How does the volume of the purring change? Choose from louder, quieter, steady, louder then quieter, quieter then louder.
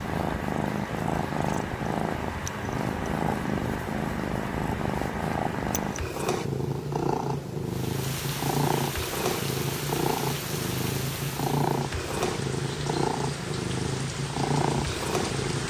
steady.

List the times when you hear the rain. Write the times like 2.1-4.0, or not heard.
7.6-15.6.